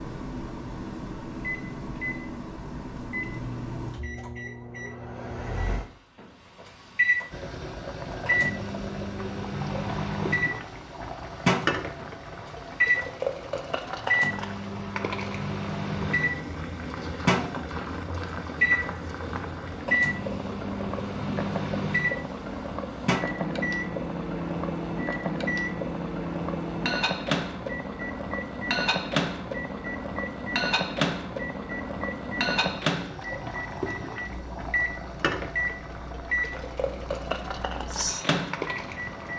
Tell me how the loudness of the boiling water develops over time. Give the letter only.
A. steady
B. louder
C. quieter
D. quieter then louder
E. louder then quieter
A.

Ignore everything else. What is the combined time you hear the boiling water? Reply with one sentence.
The boiling water can be heard for 32 seconds in total.